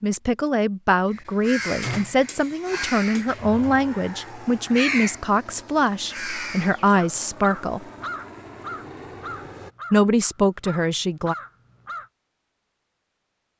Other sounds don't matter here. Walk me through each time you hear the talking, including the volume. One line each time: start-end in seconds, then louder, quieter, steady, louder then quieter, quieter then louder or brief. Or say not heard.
0.0-7.8 steady
9.9-11.3 brief.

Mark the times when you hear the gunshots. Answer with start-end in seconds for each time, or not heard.
1.8-2.3.